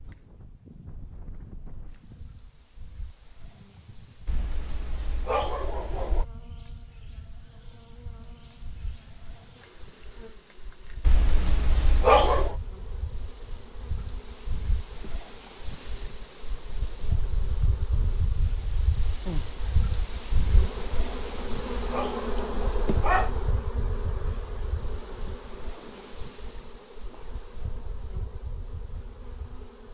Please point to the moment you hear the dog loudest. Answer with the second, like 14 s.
12 s.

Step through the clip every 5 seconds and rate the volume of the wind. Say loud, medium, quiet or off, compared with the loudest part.
quiet, quiet, medium, loud, loud, medium.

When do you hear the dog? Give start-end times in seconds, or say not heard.
4.2-6.2, 11.1-12.6, 21.1-23.4.